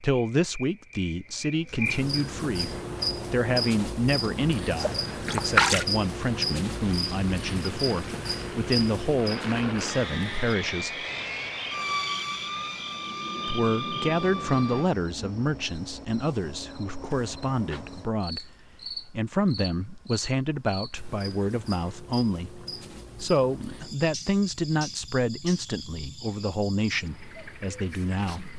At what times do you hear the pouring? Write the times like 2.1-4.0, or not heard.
4.7-5.8.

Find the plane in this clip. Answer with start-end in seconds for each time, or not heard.
2.6-14.9.